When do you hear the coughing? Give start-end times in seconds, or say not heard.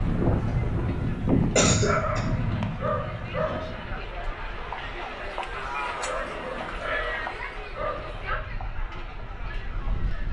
1.6-2.2.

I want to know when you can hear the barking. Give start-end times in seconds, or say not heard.
1.7-3.9, 5.8-8.4.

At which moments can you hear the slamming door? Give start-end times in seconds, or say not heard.
not heard.